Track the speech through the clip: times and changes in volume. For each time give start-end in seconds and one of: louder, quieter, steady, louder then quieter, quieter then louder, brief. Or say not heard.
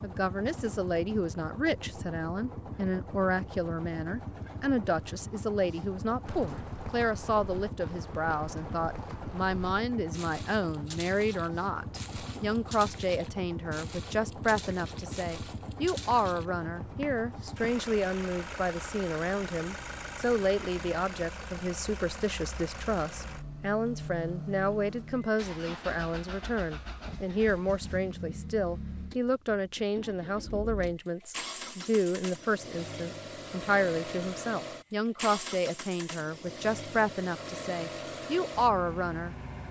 0.0-39.4 steady.